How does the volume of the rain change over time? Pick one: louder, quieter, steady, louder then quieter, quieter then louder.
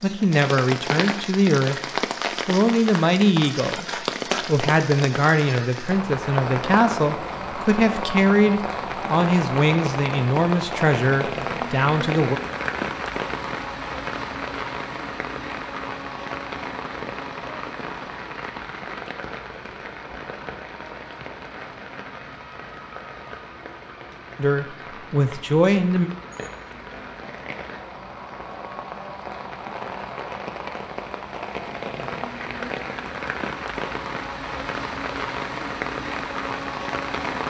quieter then louder.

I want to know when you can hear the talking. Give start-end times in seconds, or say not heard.
0.0-1.8, 2.5-12.4, 24.4-26.1.